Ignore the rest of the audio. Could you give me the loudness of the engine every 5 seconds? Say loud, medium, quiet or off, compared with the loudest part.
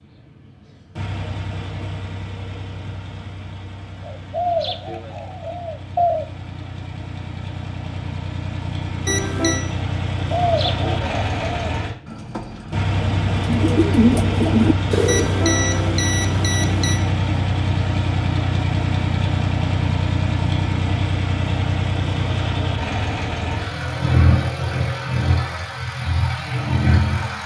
quiet, medium, loud, loud, loud, loud.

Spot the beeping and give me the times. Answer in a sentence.
You can hear the beeping from 9.1 to 9.7 s and from 15.1 to 17.0 s.